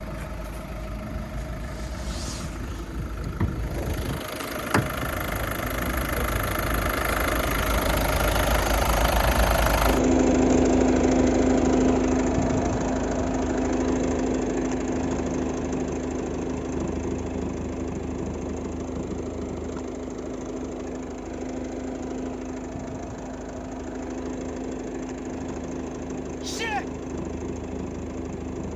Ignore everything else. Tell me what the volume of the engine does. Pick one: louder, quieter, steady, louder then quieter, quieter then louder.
louder then quieter.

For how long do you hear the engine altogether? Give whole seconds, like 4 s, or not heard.
29 s.